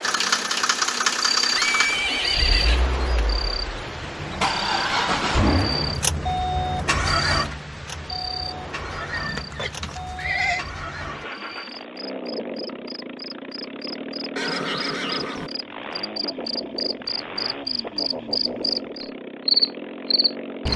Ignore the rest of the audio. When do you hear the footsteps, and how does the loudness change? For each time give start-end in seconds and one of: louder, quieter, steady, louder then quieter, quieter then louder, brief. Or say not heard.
not heard.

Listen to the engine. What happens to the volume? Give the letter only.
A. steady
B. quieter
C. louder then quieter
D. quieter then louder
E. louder
B.